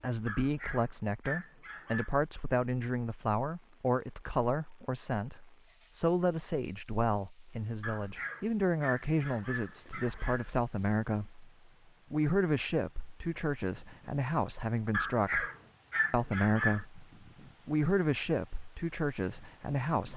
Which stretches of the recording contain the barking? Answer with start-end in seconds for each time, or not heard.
0.2-2.1, 7.8-10.6, 14.9-16.9.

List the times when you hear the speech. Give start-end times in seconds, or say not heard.
0.0-11.5, 12.1-15.4, 16.1-17.0, 17.6-20.1.